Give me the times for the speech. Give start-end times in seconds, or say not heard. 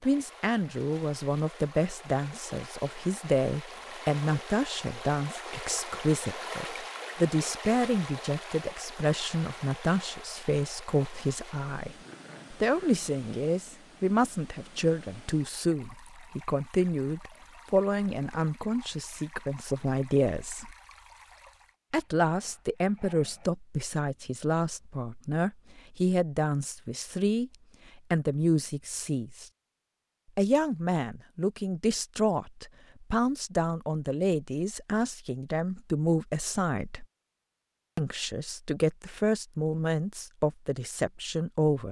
0.0-20.8, 21.9-27.5, 28.1-29.4, 30.4-37.0, 38.0-41.8.